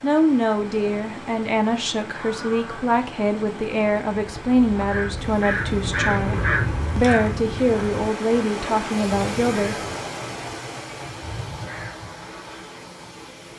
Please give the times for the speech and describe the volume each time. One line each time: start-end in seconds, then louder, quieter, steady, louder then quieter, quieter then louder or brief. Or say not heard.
0.0-9.8 steady.